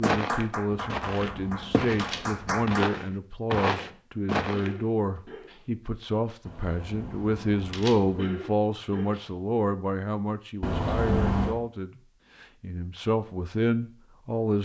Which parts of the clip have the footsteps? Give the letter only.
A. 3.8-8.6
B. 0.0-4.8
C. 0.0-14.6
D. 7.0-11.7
B.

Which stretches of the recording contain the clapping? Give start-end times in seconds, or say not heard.
0.0-2.9.